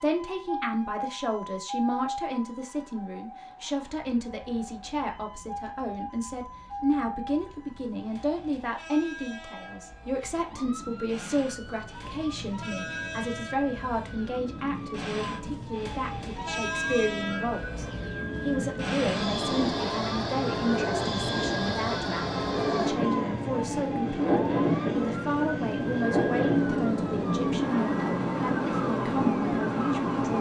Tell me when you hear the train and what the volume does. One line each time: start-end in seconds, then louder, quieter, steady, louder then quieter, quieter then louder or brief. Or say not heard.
3.8-30.3 louder.